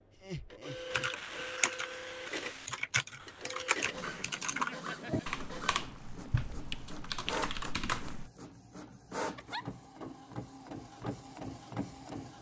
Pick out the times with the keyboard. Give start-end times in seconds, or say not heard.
0.9-8.3.